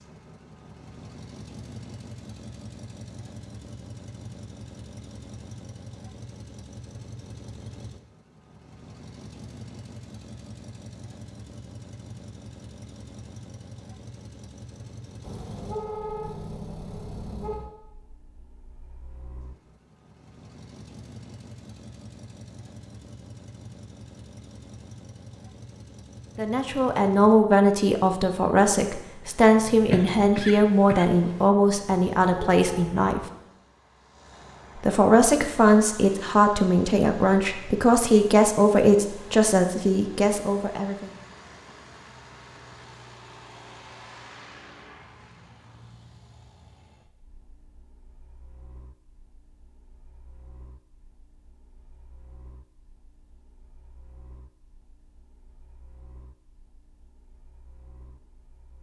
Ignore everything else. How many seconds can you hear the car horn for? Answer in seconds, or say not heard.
3 s.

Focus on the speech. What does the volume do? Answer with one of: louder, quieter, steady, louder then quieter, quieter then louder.
steady.